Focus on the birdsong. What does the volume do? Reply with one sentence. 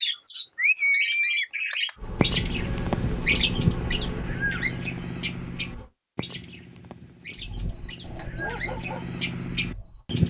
The loudness of the birdsong goes down, then up.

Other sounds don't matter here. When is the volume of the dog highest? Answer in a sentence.
The volume of the dog peaks at 9 seconds.